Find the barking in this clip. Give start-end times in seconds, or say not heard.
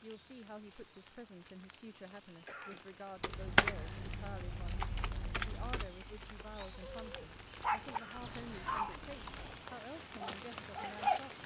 6.6-11.2.